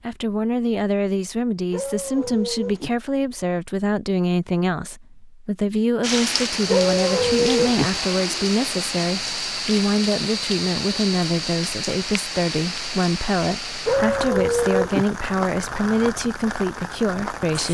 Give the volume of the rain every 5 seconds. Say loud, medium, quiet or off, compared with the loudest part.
off, loud, loud, medium.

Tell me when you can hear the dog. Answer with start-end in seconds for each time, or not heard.
1.7-2.9, 6.7-7.9, 13.8-15.1.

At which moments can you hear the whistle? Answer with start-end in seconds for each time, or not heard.
not heard.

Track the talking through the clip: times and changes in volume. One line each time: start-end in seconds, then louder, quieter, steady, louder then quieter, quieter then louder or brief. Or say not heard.
0.0-17.6 steady.